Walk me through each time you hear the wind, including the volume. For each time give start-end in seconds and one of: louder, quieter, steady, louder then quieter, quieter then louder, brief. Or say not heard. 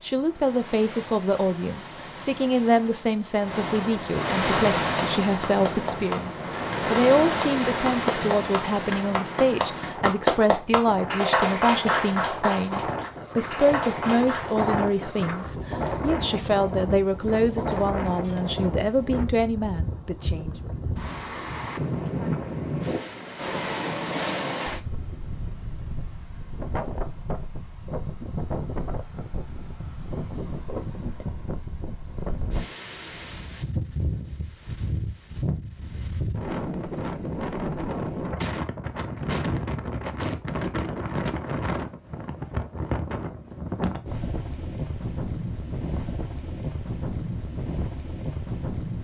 0.0-48.9 steady.